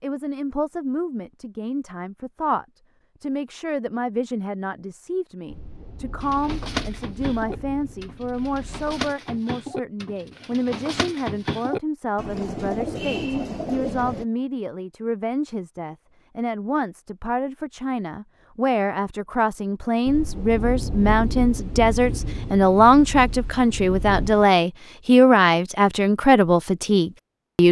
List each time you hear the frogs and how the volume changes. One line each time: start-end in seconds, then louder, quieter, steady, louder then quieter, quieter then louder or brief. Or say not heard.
not heard.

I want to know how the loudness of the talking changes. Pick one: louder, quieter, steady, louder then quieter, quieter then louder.
louder.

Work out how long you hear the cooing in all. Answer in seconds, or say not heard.
8 s.